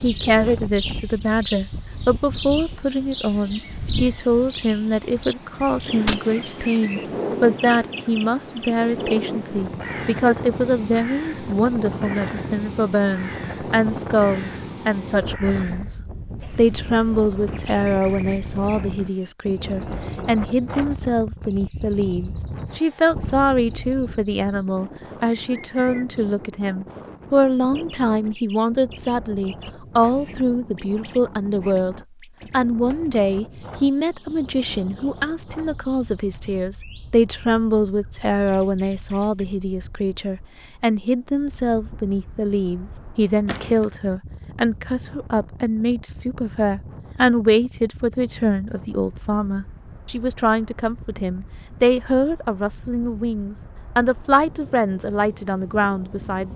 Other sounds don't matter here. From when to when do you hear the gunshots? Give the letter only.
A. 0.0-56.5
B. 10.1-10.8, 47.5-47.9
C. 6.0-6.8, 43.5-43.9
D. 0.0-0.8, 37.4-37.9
C.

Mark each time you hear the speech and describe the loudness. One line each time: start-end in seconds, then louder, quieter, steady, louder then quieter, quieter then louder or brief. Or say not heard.
0.0-56.5 steady.